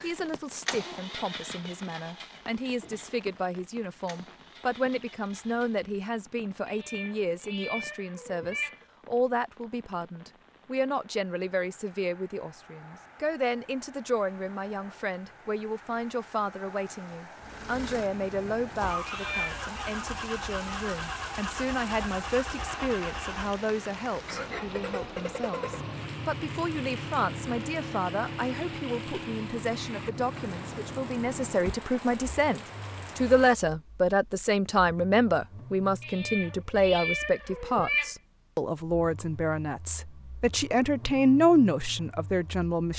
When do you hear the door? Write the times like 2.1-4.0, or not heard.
not heard.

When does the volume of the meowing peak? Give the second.
38 s.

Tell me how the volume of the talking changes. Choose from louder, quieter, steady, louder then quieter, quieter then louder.
louder.